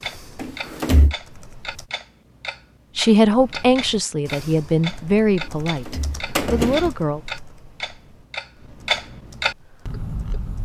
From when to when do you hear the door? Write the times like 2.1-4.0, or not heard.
0.3-1.1, 5.8-6.9.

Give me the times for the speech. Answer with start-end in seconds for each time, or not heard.
3.0-7.2.